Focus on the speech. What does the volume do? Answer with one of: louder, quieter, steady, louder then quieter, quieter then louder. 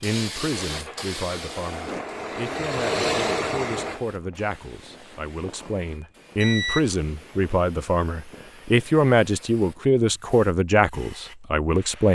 louder.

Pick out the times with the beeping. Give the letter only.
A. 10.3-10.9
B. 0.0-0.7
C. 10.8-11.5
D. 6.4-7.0
D.